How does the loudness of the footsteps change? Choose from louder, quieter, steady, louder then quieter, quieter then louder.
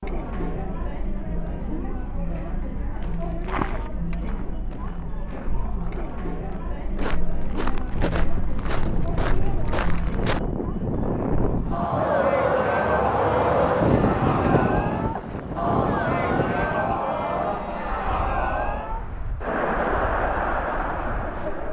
quieter then louder.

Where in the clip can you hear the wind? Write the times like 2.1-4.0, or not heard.
7.9-21.6.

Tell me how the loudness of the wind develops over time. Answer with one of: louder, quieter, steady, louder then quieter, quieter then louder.
louder then quieter.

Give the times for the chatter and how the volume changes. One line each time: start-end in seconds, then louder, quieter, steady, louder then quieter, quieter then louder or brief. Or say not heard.
0.0-21.6 louder.